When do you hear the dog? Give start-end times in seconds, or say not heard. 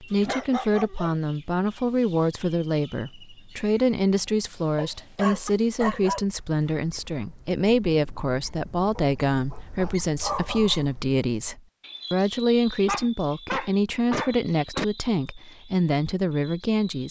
0.2-1.1, 4.8-6.2, 8.9-10.8, 12.8-14.8.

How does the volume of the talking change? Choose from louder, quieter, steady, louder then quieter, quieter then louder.
steady.